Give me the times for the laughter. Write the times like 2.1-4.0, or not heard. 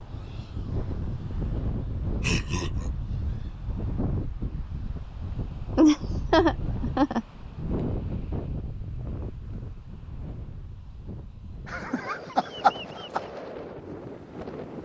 2.2-2.9, 5.8-7.2, 11.7-13.2.